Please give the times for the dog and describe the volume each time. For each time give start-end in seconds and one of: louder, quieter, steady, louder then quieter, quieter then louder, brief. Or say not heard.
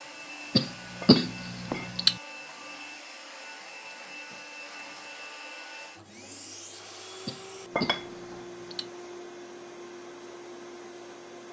not heard.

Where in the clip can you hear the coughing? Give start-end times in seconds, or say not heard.
0.6-2.1, 7.2-8.9.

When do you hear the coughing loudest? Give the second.
1 s.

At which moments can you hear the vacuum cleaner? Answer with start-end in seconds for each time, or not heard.
0.0-11.4.